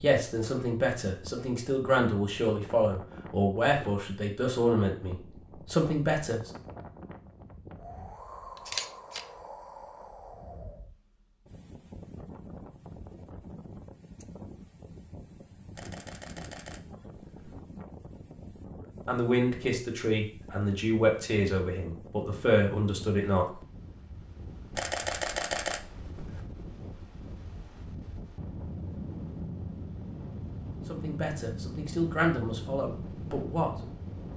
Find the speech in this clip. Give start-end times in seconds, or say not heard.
0.0-6.5, 19.1-23.6, 30.9-34.0.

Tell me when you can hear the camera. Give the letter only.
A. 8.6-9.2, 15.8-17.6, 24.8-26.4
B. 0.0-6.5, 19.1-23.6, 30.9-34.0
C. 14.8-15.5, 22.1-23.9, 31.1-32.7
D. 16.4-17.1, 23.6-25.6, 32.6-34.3
A.